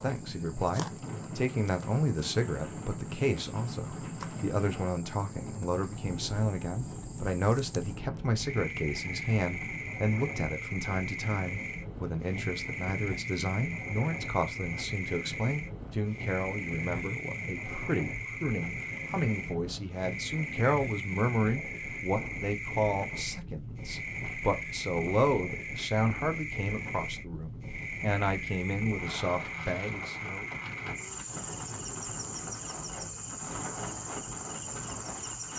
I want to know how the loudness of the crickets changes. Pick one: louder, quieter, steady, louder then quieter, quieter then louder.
louder.